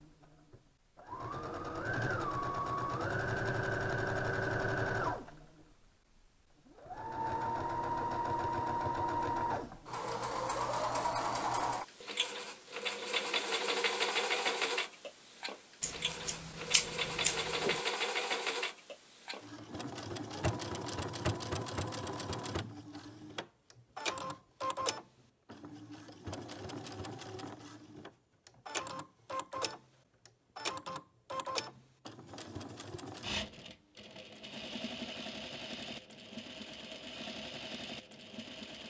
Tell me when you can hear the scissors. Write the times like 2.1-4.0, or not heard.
15.8-17.8.